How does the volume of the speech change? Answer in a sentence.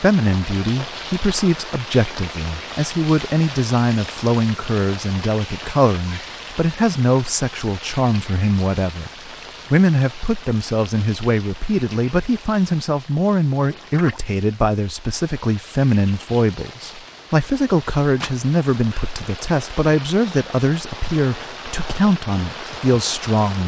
The volume of the speech stays about the same.